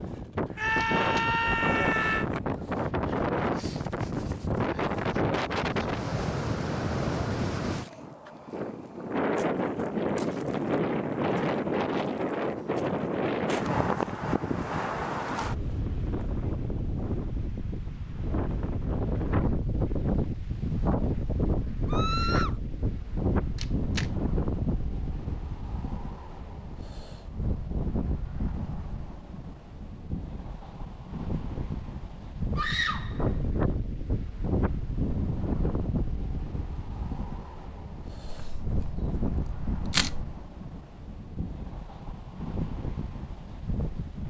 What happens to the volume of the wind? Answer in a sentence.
The volume of the wind goes down.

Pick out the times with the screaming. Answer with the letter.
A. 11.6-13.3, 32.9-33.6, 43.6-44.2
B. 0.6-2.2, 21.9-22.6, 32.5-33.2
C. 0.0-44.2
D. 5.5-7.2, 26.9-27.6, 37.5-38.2
B.